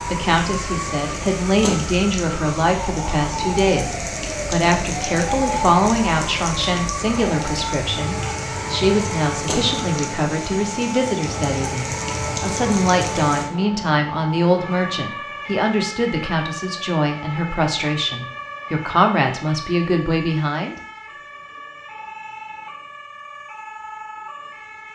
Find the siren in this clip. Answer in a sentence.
You can hear the siren from 0.0 to 24.9 s.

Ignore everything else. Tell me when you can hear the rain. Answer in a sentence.
You can hear the rain from 0.0 to 13.5 s.